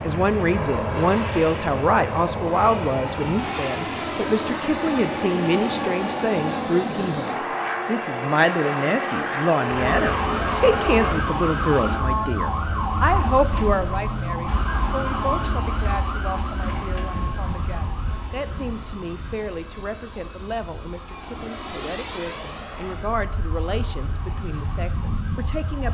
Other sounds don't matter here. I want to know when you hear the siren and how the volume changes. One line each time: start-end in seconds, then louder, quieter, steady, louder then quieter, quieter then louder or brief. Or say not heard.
9.6-25.8 quieter.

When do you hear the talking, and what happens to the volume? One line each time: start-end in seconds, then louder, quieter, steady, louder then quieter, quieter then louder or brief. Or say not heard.
0.0-25.8 quieter.